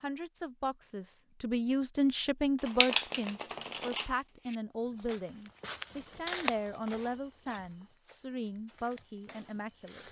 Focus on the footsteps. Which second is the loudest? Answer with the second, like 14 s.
6 s.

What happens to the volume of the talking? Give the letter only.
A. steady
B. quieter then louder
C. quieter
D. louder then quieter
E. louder
C.